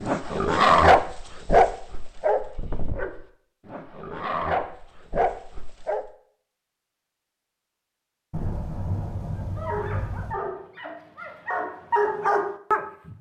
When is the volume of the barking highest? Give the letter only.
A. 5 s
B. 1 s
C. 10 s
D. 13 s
B.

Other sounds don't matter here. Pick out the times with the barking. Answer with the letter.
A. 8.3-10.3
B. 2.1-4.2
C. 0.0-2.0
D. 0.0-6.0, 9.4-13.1
D.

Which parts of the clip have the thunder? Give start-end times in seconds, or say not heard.
8.3-10.3.